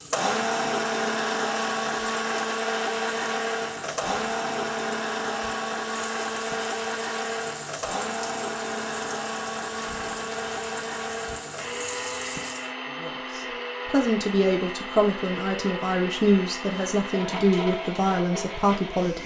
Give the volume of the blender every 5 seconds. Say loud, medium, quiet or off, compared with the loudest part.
loud, loud, medium, medium.